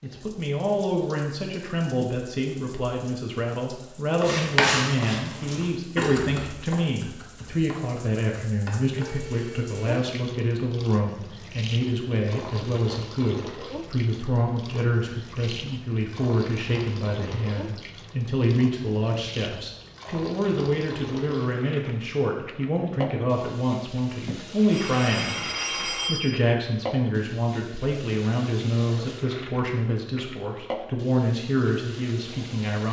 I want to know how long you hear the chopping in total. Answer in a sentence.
You can hear the chopping for 6 seconds altogether.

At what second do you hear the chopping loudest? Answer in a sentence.
The loudest moment of the chopping is at 5 seconds.